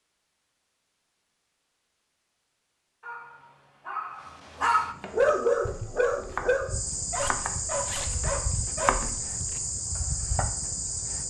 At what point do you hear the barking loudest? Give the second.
5 s.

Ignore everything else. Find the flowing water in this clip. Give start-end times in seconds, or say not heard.
not heard.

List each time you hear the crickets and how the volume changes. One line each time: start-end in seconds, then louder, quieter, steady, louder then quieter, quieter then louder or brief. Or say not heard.
4.8-11.2 louder.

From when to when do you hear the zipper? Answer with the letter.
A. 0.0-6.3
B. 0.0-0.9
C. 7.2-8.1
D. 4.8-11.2
C.